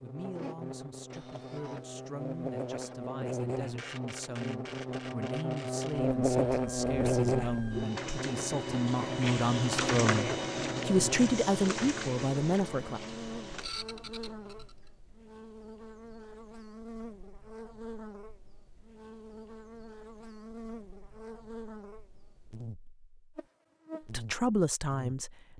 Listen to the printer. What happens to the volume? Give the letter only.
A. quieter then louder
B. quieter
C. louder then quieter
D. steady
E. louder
C.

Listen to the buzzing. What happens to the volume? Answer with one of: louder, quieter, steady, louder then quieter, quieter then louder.
louder then quieter.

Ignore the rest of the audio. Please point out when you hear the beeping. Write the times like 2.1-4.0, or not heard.
not heard.